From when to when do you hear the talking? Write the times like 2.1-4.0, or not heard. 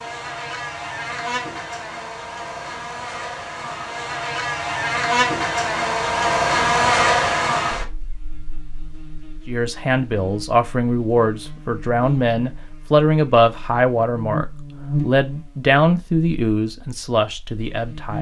9.4-18.1.